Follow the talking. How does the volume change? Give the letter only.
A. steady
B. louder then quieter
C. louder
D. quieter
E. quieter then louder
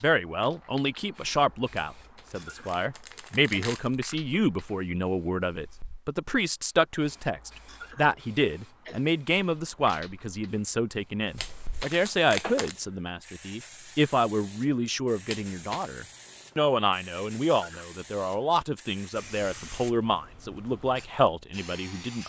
A.